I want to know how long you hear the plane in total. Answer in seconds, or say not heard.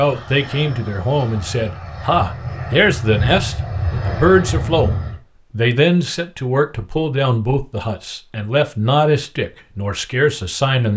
5 s.